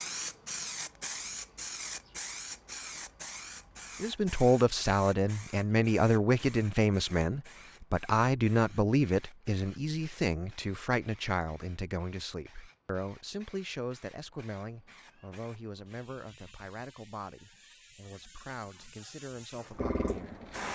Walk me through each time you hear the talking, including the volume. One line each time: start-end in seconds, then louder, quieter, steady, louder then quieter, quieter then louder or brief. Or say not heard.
4.0-20.4 quieter.